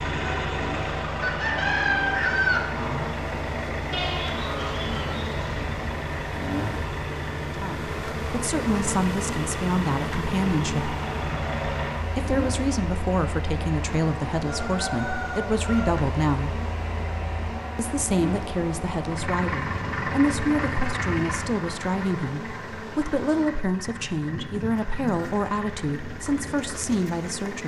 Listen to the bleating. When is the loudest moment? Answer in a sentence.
The loudest moment of the bleating is at 4 seconds.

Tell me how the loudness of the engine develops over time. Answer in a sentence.
The volume of the engine goes down.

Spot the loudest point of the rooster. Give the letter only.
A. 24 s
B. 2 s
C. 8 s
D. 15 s
B.